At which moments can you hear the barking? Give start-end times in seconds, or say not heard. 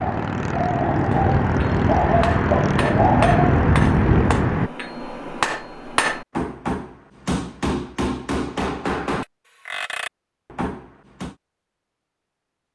0.0-3.5.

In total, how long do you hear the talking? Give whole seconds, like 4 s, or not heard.
not heard.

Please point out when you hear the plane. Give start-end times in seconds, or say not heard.
0.0-4.7.